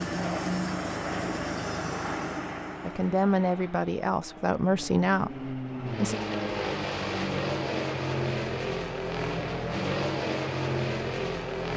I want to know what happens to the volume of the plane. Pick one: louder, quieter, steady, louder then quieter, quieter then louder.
quieter then louder.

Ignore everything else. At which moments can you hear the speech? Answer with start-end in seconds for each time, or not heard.
2.8-6.2.